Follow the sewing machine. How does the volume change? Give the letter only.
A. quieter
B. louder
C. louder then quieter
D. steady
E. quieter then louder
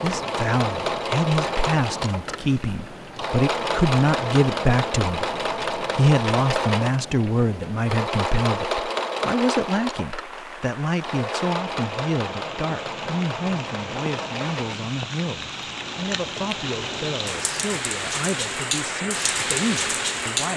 A.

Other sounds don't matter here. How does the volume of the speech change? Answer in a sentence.
The loudness of the speech goes down.